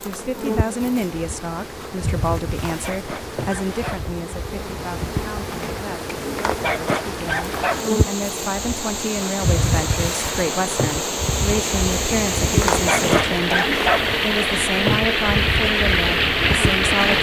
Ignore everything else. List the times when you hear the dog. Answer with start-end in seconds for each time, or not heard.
2.6-4.1, 6.3-7.9, 12.6-14.2.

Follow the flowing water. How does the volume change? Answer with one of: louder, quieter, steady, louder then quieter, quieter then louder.
louder.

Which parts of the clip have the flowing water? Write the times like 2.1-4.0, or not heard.
0.0-17.1.